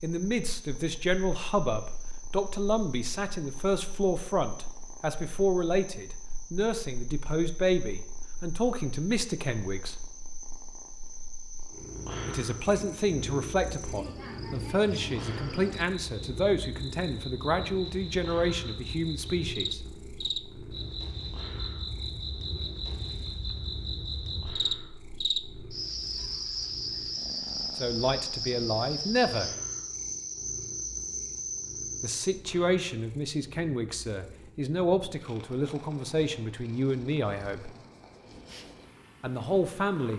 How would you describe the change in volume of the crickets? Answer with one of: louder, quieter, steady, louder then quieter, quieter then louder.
louder.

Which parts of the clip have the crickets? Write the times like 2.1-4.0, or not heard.
0.0-32.2.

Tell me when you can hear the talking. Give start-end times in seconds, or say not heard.
0.0-9.9, 12.2-19.8, 27.8-29.5, 32.0-37.8, 39.2-40.1.